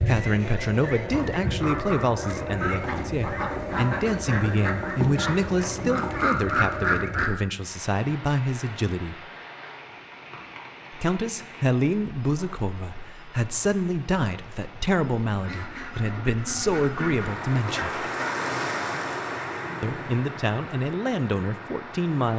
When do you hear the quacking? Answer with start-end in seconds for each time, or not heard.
0.0-7.3, 15.3-18.4.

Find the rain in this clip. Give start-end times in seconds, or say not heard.
7.5-22.3.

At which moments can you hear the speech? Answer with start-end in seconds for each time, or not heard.
0.0-9.2, 10.9-18.1, 19.8-22.3.